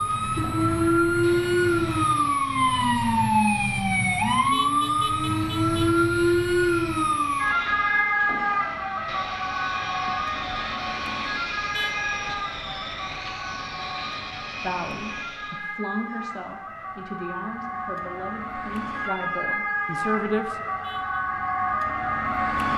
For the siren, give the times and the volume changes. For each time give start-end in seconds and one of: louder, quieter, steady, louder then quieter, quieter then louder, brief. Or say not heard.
0.0-22.7 quieter then louder.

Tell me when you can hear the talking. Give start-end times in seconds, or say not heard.
14.6-20.6.